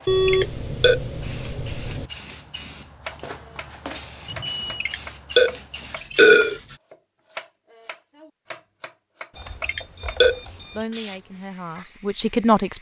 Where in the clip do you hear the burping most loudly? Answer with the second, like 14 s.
6 s.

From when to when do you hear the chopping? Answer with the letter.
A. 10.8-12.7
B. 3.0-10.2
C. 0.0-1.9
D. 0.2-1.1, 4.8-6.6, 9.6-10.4
B.